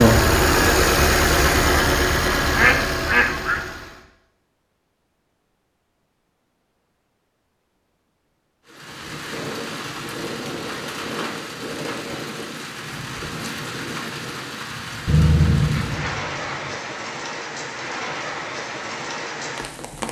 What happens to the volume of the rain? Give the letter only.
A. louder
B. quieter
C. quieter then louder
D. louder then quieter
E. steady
E.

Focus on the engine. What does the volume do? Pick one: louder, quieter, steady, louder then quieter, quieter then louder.
quieter.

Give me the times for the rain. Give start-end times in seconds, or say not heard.
8.7-20.0.